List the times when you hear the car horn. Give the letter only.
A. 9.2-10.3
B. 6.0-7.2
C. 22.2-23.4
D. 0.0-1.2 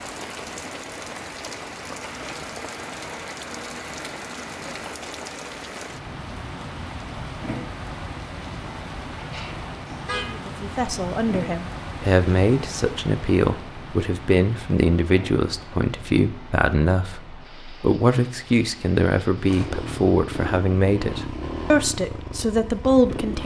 A.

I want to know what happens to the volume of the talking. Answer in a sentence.
The volume of the talking stays about the same.